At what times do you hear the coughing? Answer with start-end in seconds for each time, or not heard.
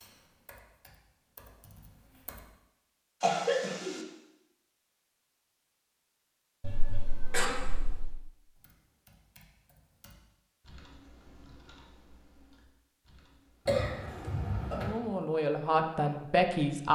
3.2-4.0, 6.6-8.2, 13.7-14.9.